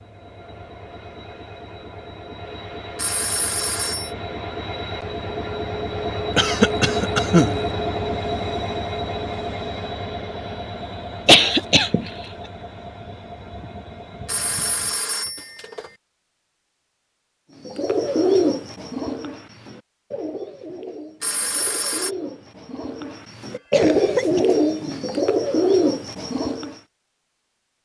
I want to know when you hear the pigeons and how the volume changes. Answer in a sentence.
The pigeons can be heard from 17.6 to 26.8 s, getting quieter then louder.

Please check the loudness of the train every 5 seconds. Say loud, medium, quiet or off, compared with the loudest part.
medium, loud, medium, off, off, off.